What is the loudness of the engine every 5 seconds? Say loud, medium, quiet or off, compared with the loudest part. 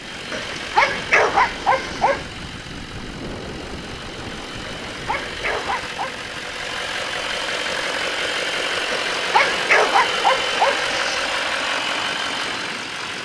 medium, loud, loud.